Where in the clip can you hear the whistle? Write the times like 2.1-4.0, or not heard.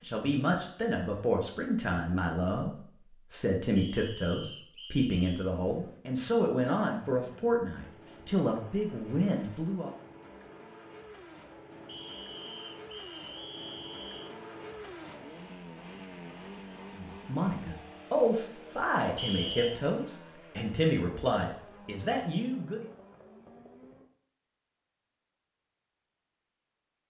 3.8-5.5, 11.8-14.4, 19.1-19.8.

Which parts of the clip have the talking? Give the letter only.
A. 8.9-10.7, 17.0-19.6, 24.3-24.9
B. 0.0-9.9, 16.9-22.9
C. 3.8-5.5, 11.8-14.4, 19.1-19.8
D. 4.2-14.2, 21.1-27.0
B.